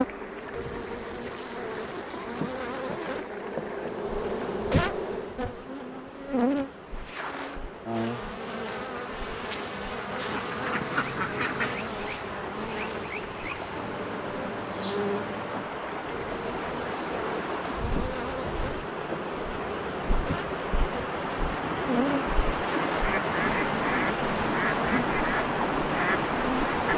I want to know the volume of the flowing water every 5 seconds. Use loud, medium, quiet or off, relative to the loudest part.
quiet, quiet, medium, medium, loud, loud.